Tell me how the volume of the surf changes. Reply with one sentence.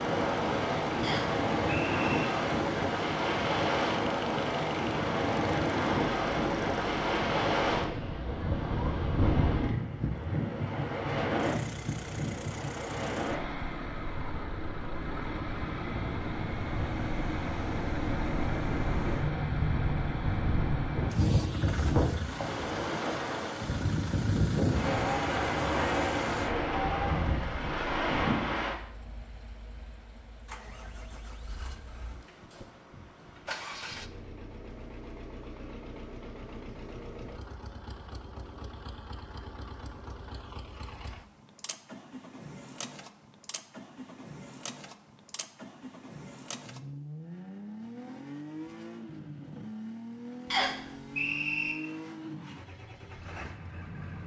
The volume of the surf goes down, then up.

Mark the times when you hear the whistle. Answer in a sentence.
You can hear the whistle from 1.0 to 2.2 s and from 50.5 to 51.8 s.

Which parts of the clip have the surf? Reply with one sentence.
You can hear the surf from 0.0 to 28.8 s.